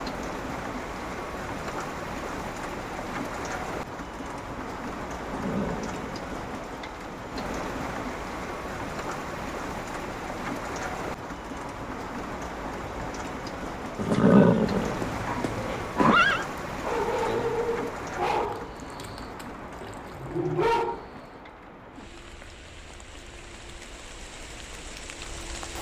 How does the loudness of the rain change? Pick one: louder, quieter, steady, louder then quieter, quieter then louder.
quieter.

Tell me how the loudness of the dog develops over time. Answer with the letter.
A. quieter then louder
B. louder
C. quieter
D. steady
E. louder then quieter
A.